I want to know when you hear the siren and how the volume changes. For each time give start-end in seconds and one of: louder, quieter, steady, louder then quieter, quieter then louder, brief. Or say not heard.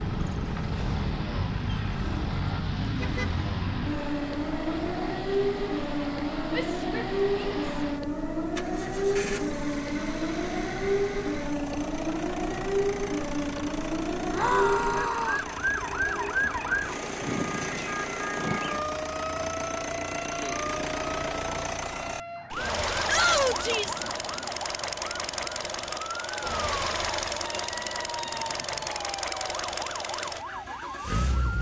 0.0-31.5 quieter.